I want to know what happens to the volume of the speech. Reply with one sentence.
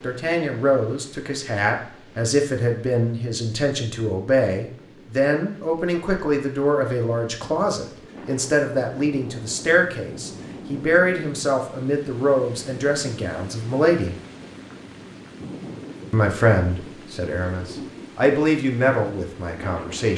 The loudness of the speech stays about the same.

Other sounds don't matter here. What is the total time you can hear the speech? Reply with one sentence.
You can hear the speech for 18 seconds altogether.